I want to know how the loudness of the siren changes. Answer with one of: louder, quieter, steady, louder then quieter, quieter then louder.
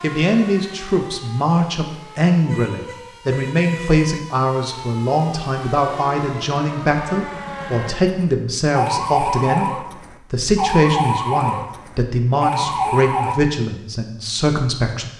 louder.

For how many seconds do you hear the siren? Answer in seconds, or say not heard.
13 s.